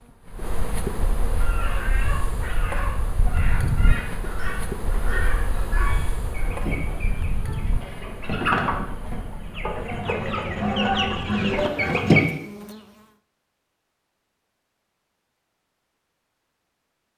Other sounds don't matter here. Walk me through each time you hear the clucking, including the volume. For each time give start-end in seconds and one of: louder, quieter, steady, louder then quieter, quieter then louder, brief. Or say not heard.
1.4-12.2 louder.